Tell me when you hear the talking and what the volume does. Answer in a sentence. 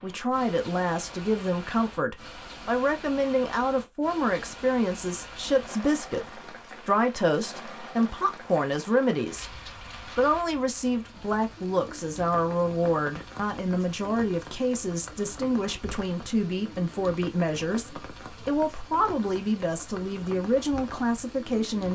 The talking can be heard from 0.0 to 21.9 s, at a steady volume.